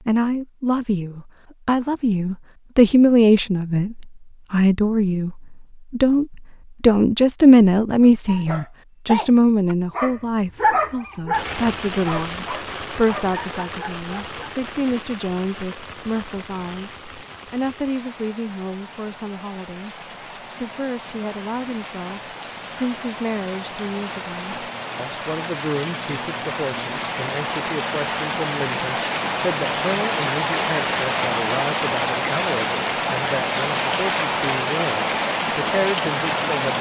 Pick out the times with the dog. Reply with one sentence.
You can hear the dog from 8.0 to 14.5 s.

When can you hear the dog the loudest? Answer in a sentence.
The loudest moment of the dog is at 11 seconds.